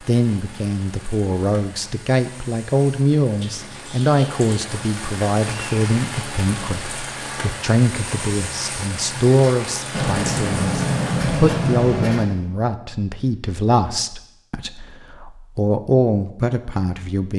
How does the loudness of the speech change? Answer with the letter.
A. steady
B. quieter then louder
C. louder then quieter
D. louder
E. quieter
A.